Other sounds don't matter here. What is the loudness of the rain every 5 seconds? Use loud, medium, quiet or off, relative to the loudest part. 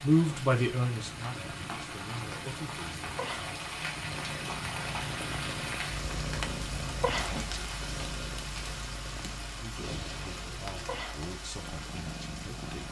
loud, loud, medium.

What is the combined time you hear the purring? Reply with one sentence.
You can hear the purring for 13 seconds altogether.